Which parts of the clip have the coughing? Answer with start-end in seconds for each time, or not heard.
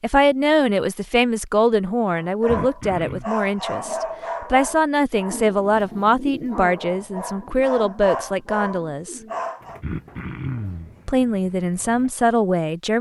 2.5-3.2, 9.8-10.9.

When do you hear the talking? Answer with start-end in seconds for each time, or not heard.
0.0-9.2, 11.1-12.9.